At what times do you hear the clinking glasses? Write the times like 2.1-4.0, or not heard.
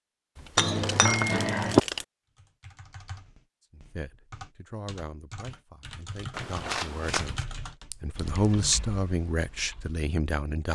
0.6-1.8, 7.9-8.4.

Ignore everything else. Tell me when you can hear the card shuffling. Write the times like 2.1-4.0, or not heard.
0.3-2.0, 6.3-7.5.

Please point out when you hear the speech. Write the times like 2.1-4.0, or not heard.
3.8-10.7.